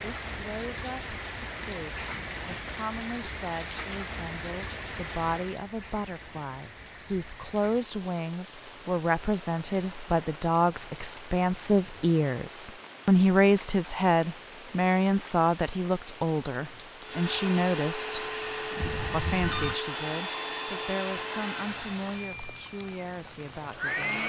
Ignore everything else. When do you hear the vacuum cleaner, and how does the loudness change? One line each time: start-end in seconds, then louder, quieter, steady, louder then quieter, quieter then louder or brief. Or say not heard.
17.0-24.2 quieter.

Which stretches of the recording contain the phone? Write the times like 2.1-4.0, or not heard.
18.8-19.8.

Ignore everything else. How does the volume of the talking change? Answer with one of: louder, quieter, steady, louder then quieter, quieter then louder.
louder then quieter.